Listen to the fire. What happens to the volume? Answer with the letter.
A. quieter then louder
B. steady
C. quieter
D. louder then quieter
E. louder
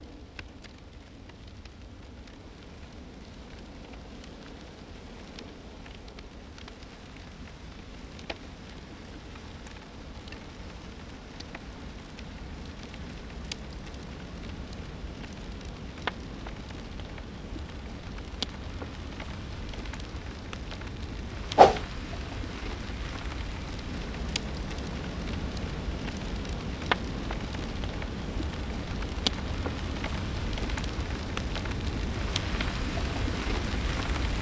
E.